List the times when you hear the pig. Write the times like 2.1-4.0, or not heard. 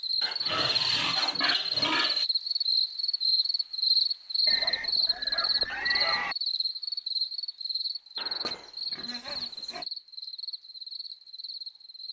0.2-2.2, 4.5-6.3, 8.2-9.8.